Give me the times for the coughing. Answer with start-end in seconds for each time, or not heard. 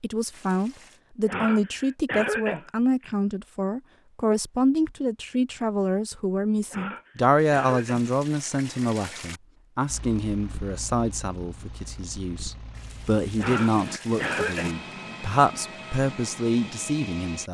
1.2-3.1, 6.7-8.1, 13.3-14.8.